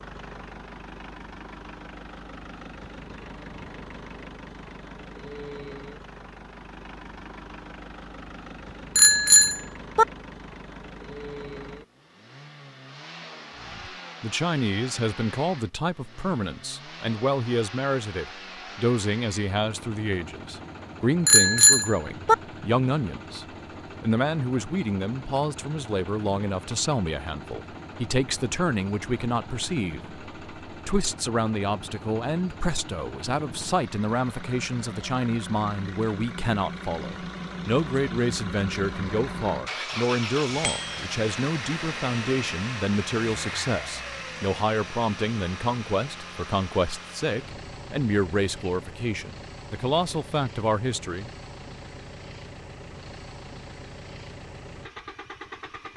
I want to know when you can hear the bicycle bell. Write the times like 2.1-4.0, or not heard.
8.9-10.1, 21.2-22.4, 40.6-41.0.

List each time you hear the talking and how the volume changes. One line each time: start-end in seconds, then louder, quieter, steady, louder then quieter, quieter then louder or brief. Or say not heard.
13.6-51.3 steady.